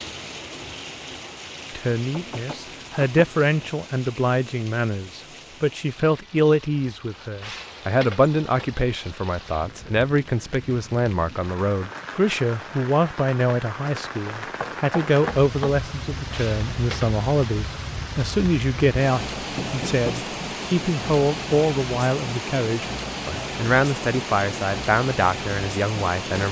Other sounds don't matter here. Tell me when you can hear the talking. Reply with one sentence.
The talking can be heard from 1.8 to 26.4 s.